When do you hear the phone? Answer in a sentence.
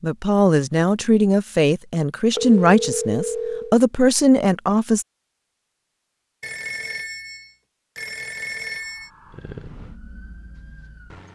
You can hear the phone from 2.4 to 3.8 s and from 6.4 to 9.1 s.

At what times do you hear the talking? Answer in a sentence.
You can hear the talking from 0.0 to 5.0 s.